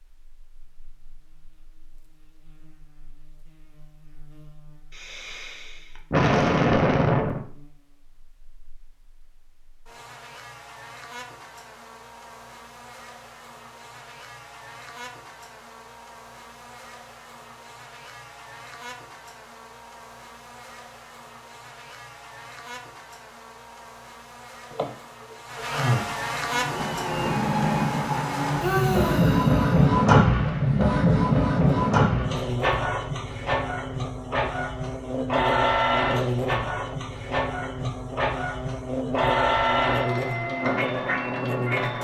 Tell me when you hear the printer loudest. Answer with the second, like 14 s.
30 s.